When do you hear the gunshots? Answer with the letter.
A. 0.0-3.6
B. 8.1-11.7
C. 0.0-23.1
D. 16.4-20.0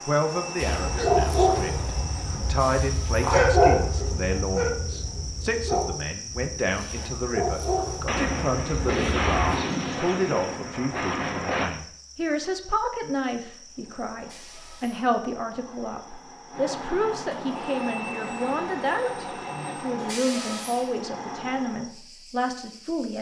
B.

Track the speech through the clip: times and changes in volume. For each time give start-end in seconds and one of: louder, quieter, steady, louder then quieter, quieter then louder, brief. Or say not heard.
0.0-23.1 steady.